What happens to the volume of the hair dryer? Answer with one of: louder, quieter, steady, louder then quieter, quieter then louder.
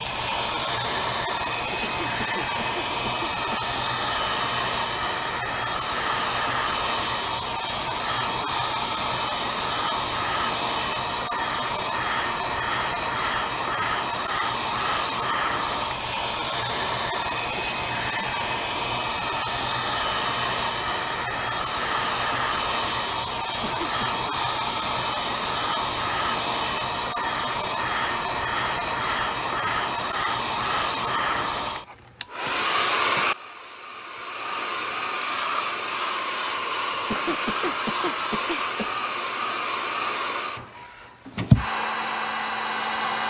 steady.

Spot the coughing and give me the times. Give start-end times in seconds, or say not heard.
1.6-3.6, 23.4-24.1, 37.0-39.0.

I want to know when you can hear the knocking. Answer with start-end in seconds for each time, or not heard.
not heard.